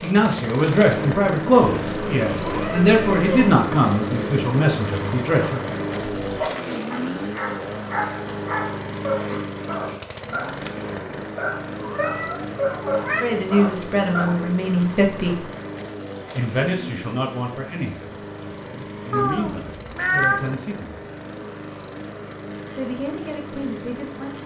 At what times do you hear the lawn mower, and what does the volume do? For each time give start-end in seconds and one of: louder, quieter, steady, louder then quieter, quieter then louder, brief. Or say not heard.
0.0-24.4 quieter.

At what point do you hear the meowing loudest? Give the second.
20 s.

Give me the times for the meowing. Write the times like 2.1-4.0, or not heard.
1.6-3.5, 11.8-13.2, 19.1-20.4.